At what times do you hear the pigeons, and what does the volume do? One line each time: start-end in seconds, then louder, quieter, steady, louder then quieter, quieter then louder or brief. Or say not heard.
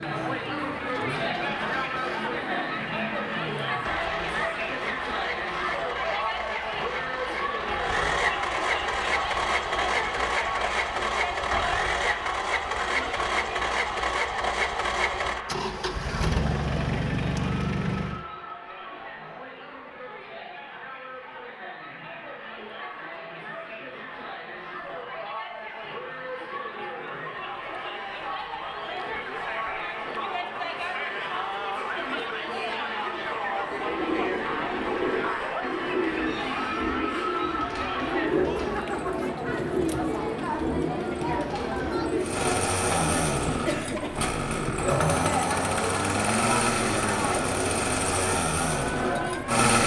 33.5-42.4 steady.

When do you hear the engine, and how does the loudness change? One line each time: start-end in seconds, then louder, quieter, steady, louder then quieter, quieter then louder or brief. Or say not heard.
0.0-18.2 louder
42.2-49.8 steady.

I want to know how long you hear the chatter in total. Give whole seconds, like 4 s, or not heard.
50 s.